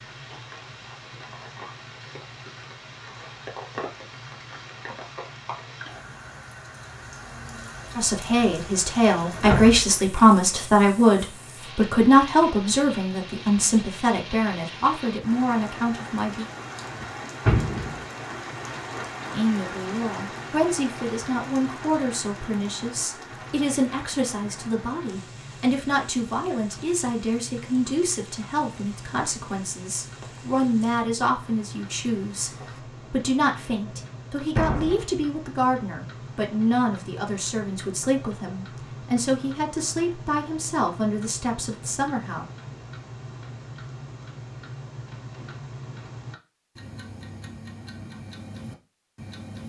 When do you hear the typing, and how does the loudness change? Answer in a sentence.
You can't hear the typing here.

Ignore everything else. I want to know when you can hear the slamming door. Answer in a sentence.
You can hear the slamming door from 9.3 to 9.9 s, from 17.0 to 18.1 s and from 34.5 to 35.0 s.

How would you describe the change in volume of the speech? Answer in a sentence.
The loudness of the speech goes down.